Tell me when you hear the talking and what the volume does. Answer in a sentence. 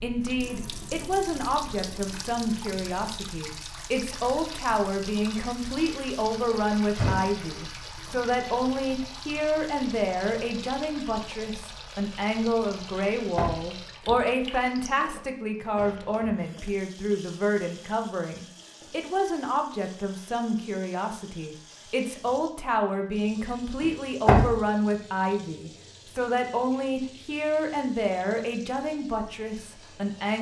You can hear the talking from 0.0 to 30.3 s, at a steady volume.